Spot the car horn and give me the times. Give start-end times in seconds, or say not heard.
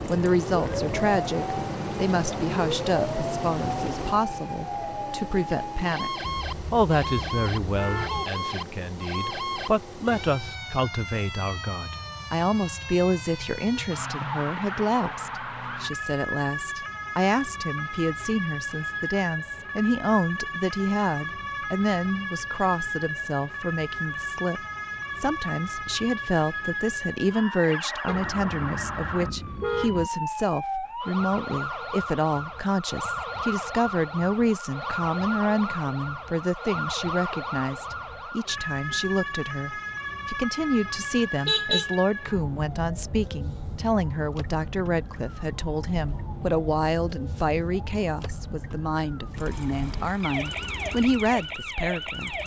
6.2-8.2, 28.1-30.1, 41.5-42.0.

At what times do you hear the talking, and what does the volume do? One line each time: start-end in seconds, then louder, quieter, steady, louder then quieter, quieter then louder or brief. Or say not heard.
0.1-52.4 steady.